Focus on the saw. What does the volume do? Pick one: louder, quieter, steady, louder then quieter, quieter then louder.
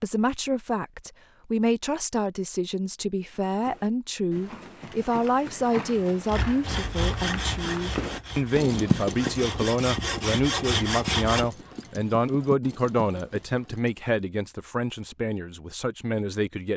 quieter then louder.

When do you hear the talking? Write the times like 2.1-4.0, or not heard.
0.0-16.7.